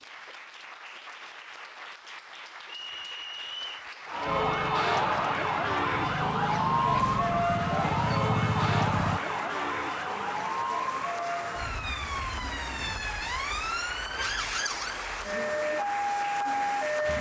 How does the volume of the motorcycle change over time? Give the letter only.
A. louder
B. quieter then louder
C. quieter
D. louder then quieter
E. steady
A.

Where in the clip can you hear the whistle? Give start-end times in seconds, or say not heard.
2.7-3.9.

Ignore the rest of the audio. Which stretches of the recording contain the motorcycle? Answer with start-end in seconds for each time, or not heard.
4.2-9.2.